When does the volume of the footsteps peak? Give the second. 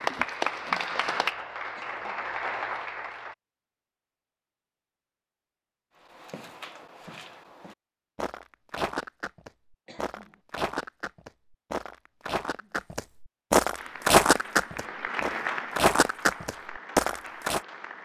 14 s.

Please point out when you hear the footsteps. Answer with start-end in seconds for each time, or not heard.
6.1-17.6.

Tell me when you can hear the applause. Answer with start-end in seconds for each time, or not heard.
0.0-3.4, 13.8-18.0.